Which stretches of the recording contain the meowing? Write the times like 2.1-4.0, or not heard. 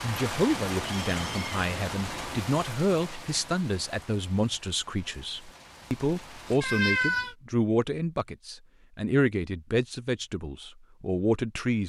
0.7-2.4, 6.6-7.3.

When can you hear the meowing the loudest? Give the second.
7 s.